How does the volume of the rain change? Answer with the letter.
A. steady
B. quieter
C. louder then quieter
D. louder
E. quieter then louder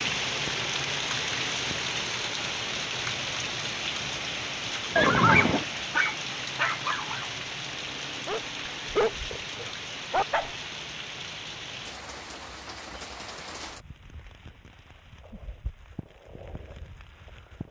B.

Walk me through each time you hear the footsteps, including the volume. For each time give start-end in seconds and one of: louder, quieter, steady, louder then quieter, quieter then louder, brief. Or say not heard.
not heard.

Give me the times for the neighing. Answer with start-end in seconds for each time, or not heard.
5.0-5.7.